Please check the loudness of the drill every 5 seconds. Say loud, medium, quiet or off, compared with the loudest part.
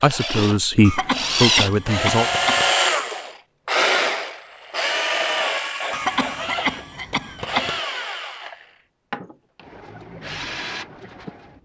loud, medium, quiet.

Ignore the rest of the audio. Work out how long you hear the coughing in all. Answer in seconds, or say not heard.
4 s.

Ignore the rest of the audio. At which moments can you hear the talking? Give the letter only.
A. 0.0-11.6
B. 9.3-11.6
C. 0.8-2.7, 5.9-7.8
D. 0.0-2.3
D.